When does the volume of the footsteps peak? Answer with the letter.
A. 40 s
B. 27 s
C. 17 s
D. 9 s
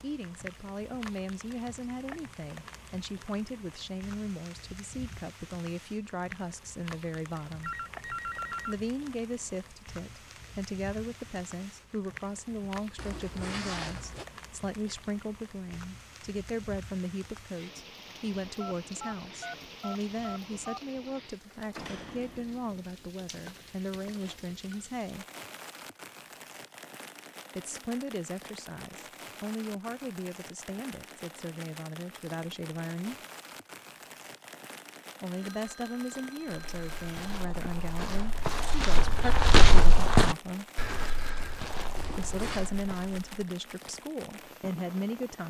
A.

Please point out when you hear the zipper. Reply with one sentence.
The zipper can be heard from 12.9 to 14.2 s and from 42.0 to 42.7 s.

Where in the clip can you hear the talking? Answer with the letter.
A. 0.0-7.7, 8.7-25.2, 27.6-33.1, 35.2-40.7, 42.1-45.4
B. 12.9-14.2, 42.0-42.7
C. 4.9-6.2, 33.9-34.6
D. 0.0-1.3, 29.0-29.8
A.